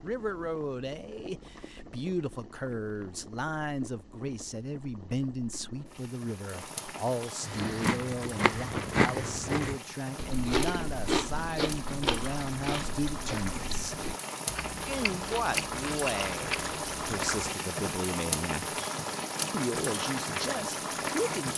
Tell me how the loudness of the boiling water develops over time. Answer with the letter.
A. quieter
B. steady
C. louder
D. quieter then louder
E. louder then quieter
C.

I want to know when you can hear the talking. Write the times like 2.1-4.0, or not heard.
0.0-13.9, 14.8-18.8, 19.5-21.5.